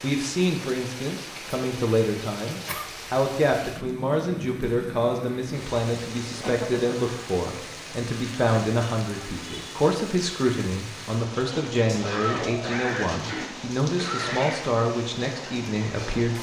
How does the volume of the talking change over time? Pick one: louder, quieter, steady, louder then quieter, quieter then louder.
steady.